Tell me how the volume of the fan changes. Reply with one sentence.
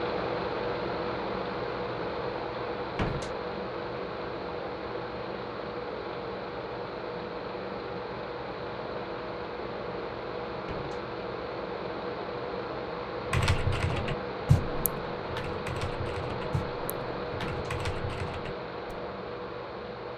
The volume of the fan stays about the same.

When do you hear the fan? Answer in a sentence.
You can hear the fan from 0.0 to 20.1 s.